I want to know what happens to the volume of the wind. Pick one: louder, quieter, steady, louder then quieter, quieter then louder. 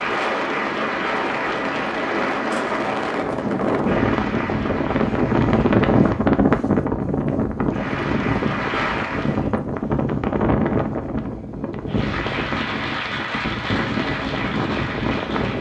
louder then quieter.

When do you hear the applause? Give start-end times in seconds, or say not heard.
0.0-6.2, 7.7-9.5, 11.8-15.5.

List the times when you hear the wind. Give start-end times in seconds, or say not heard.
0.0-15.5.